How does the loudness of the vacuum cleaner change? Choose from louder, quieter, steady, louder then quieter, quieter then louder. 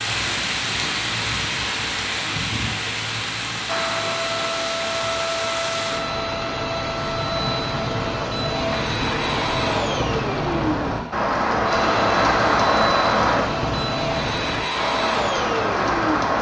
steady.